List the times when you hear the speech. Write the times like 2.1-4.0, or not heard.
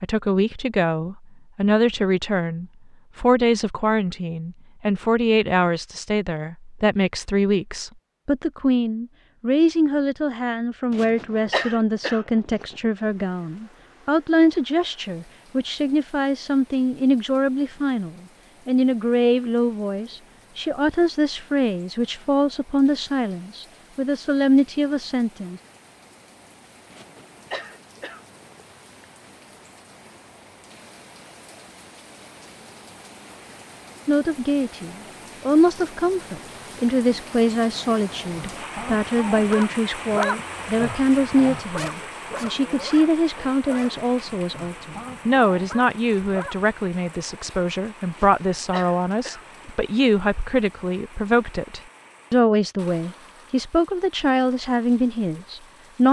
0.0-25.6, 34.0-56.0.